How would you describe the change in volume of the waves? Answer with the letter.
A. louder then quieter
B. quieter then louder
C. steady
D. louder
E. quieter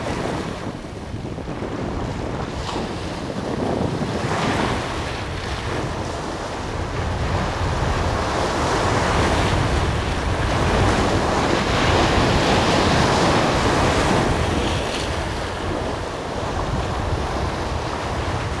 A.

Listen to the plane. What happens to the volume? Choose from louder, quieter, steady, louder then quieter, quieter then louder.
louder.